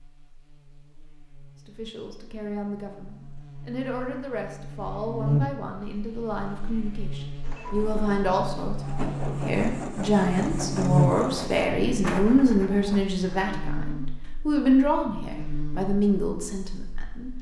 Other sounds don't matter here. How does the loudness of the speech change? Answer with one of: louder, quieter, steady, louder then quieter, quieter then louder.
louder.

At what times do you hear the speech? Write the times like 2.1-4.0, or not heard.
1.6-17.3.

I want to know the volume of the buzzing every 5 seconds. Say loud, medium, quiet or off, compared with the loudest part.
quiet, loud, loud, medium.